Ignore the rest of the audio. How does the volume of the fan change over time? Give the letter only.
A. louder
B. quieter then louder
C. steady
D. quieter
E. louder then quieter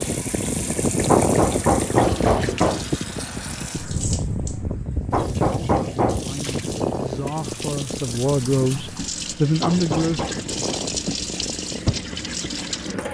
D.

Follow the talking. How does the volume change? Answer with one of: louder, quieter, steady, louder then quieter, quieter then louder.
louder.